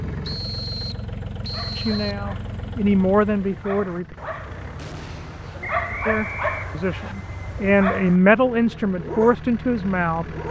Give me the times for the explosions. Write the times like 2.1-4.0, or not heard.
4.8-5.8.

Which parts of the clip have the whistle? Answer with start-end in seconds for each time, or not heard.
0.2-2.2, 5.6-7.2.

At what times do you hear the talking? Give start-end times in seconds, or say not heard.
1.8-4.2, 6.0-10.2.